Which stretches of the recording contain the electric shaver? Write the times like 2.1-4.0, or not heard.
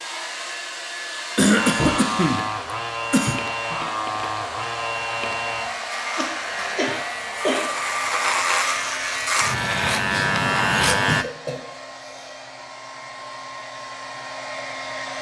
1.6-11.2.